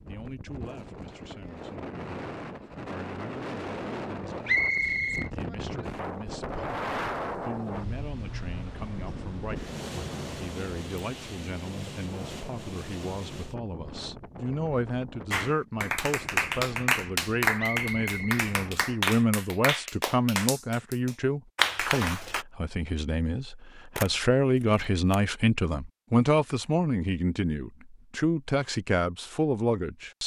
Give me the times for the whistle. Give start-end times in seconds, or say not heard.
4.5-5.3, 17.6-18.4.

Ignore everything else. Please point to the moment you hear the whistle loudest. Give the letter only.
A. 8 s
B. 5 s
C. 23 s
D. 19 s
B.